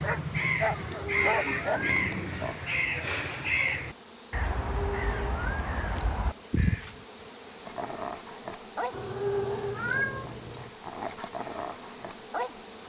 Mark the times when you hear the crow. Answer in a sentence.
The crow can be heard from 0.0 to 7.0 s.